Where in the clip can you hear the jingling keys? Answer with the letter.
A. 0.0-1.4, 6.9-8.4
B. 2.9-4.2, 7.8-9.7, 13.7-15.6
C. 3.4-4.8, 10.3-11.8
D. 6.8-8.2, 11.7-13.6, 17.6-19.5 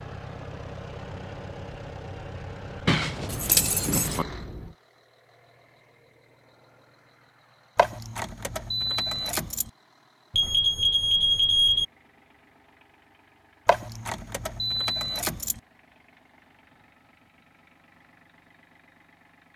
B.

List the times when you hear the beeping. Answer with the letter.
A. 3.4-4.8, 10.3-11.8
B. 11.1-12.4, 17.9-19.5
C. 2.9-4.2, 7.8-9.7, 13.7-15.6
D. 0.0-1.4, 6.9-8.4
A.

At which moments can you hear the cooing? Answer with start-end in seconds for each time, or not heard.
not heard.